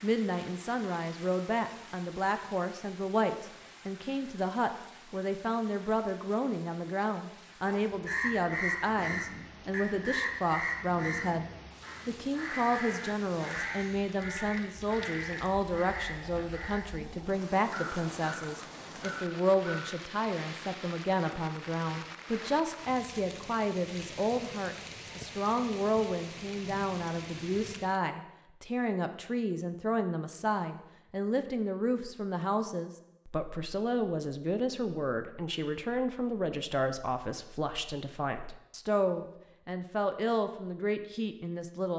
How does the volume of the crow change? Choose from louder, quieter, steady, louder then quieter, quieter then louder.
quieter.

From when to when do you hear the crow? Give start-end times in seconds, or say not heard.
8.1-19.9.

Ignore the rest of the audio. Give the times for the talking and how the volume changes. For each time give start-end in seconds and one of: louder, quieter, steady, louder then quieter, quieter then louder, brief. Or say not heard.
0.0-41.9 steady.